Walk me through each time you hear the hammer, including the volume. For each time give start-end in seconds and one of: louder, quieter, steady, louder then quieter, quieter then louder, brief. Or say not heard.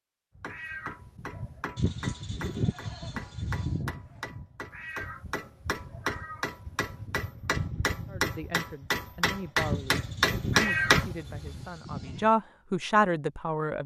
0.3-11.2 louder.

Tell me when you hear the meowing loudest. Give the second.
11 s.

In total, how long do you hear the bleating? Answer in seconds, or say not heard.
5 s.